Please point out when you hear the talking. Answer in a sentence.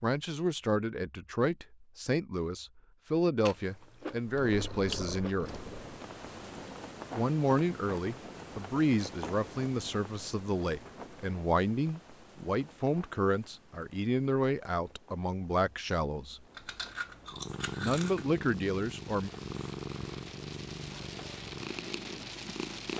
The talking can be heard from 0.0 to 5.6 s, from 7.1 to 16.4 s and from 17.8 to 19.3 s.